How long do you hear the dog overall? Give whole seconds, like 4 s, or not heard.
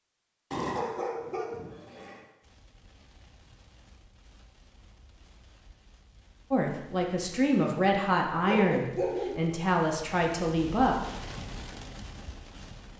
3 s.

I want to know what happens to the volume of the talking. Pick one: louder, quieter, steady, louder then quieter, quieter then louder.
steady.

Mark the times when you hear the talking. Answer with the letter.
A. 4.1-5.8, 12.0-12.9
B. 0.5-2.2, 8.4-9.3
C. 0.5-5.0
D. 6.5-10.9
D.